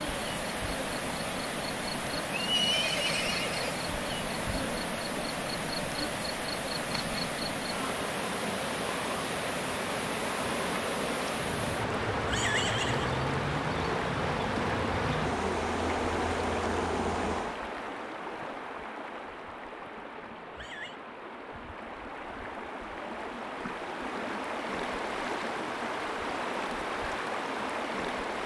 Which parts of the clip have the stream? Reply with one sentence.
You can hear the stream from 0.0 to 28.4 s.